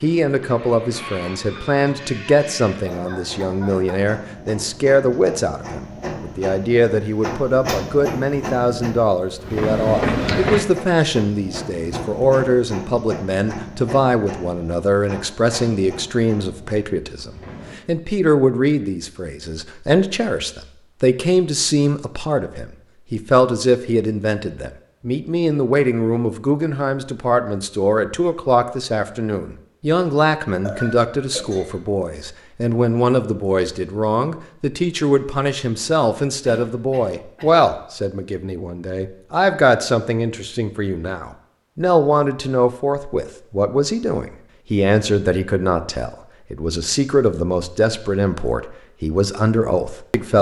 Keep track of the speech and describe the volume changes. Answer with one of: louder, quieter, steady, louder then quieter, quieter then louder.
steady.